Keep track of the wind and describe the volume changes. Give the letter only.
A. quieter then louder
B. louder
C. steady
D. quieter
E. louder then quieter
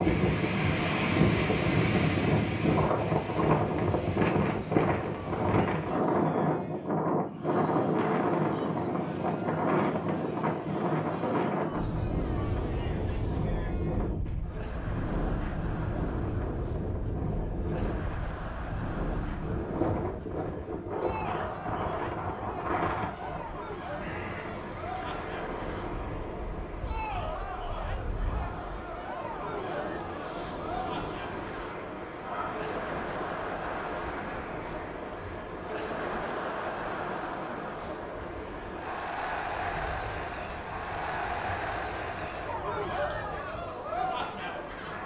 D.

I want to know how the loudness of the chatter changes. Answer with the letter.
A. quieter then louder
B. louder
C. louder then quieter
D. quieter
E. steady
B.